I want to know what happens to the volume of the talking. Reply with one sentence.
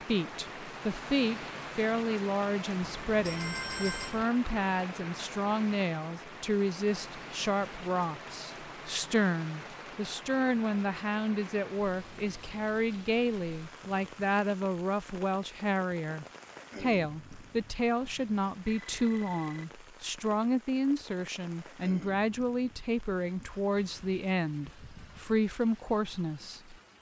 The loudness of the talking stays about the same.